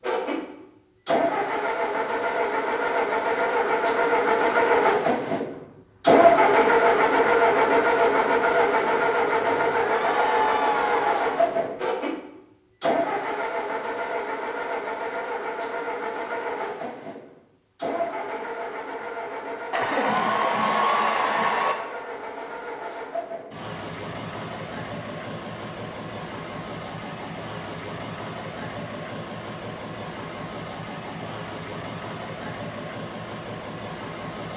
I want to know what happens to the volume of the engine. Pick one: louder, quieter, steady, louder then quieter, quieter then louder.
quieter.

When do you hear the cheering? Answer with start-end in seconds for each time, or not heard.
9.8-11.3, 19.7-21.8.